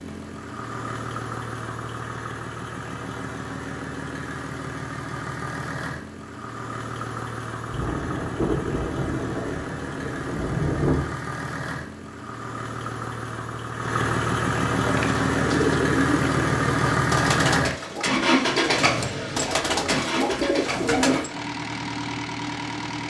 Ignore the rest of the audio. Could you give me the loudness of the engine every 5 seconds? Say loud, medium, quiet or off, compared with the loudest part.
medium, medium, medium, loud, medium.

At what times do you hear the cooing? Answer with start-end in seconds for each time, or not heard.
14.8-21.2.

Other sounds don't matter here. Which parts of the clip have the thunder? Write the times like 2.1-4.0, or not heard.
7.7-11.2.